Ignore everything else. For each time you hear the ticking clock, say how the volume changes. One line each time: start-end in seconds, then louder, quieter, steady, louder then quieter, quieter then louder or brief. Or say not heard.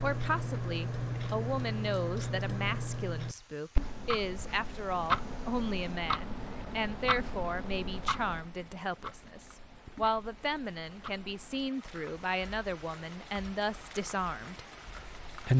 0.0-15.5 quieter.